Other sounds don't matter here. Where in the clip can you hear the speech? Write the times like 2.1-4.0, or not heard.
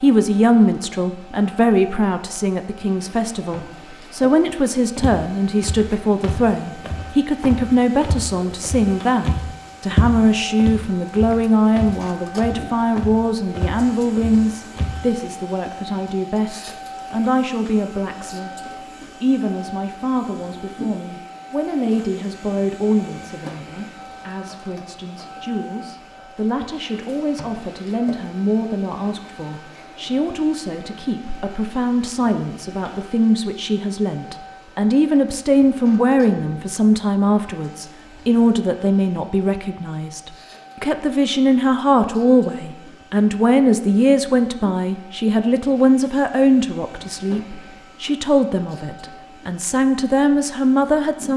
0.0-18.5, 19.2-51.3.